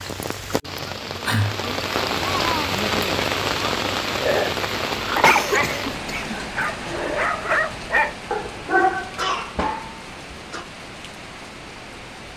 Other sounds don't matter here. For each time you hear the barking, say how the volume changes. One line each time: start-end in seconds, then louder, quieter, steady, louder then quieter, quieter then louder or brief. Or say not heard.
4.2-9.2 quieter then louder.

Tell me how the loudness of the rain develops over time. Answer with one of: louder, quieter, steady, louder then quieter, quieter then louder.
quieter.